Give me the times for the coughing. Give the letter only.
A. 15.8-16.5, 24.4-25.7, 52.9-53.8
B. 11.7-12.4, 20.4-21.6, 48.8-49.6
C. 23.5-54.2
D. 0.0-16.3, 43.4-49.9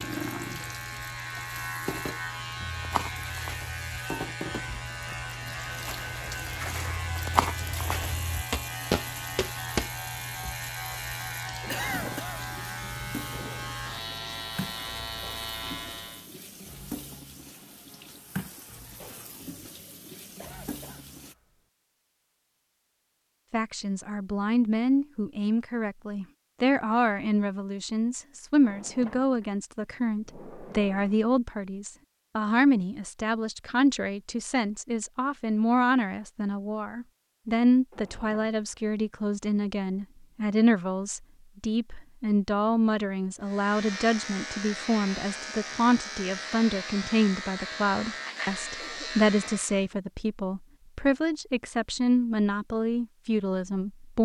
B.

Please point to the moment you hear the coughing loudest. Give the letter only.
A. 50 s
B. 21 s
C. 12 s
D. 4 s
C.